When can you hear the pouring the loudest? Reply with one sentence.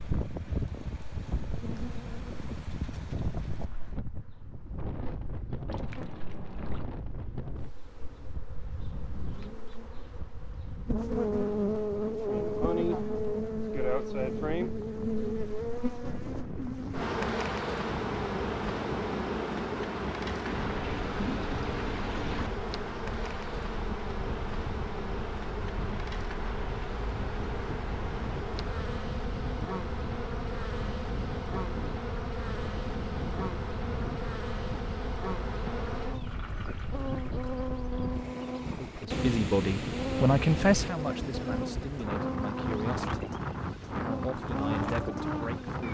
The loudest moment of the pouring is at 21 seconds.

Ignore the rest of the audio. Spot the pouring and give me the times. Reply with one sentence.
The pouring can be heard from 5.7 to 6.8 s, from 20.4 to 22.5 s and from 36.1 to 37.7 s.